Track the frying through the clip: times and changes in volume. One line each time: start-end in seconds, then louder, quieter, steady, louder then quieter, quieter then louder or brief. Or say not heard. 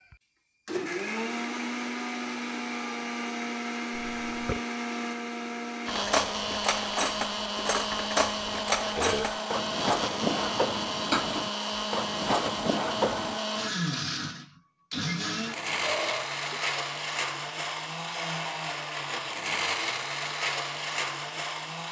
not heard.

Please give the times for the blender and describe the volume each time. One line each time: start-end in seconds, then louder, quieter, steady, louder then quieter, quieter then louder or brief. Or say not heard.
0.0-21.8 steady.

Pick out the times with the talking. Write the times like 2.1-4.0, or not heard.
not heard.